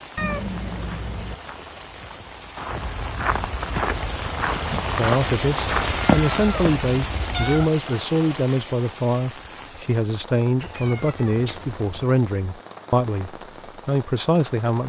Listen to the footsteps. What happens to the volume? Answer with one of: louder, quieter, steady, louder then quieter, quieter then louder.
louder.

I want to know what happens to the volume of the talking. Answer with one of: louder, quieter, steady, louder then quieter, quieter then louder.
steady.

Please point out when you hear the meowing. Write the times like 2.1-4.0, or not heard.
0.1-1.4, 5.8-7.7, 10.6-12.1.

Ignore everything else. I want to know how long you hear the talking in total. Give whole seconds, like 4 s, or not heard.
10 s.